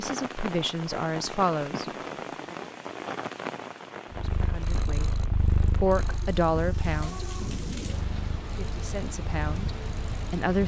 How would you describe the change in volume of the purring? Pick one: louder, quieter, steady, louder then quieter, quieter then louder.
quieter.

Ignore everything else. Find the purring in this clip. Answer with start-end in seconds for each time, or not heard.
4.1-10.6.